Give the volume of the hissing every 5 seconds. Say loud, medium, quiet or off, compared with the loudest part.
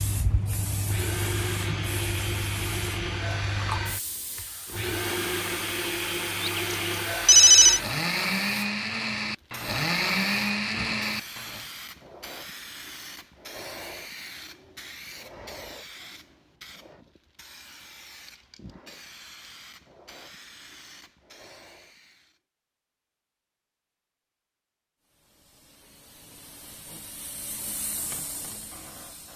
loud, medium, medium, medium, quiet, medium.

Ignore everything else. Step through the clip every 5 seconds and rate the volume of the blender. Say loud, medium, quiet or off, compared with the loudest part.
medium, loud, loud, off, off, off.